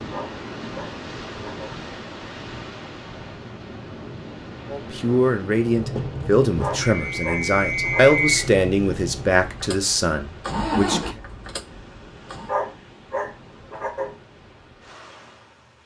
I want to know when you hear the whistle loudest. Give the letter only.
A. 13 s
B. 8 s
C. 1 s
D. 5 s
B.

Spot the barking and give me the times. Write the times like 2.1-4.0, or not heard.
0.1-1.8, 6.5-8.2, 12.4-14.2.